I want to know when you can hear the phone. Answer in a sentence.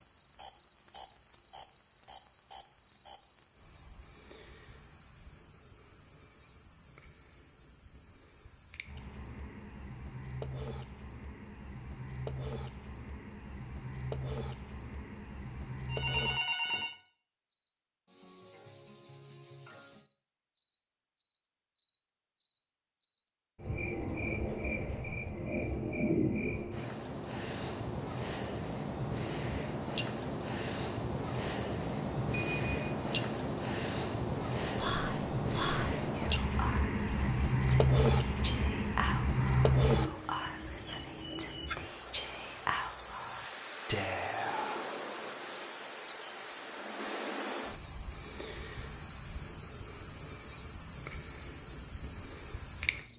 You can hear the phone from 15.8 to 16.9 s and from 32.3 to 32.9 s.